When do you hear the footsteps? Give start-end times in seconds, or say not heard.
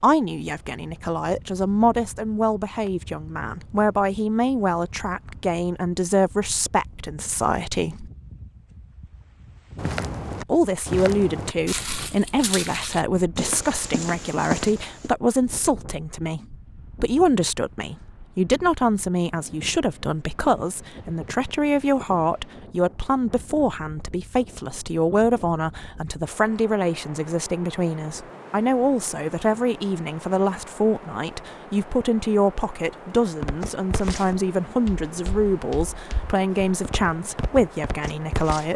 9.8-15.1, 33.4-38.7.